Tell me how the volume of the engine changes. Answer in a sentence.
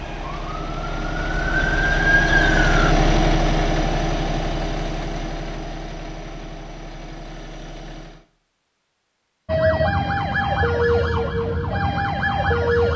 The loudness of the engine goes up, then down.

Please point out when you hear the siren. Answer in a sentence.
You can hear the siren from 0.0 to 3.0 s and from 9.4 to 12.9 s.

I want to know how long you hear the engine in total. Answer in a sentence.
You can hear the engine for 8 seconds altogether.